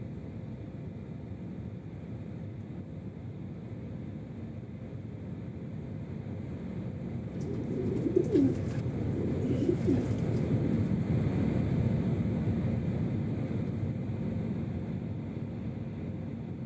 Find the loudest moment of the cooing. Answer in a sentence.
The loudest moment of the cooing is at 8 seconds.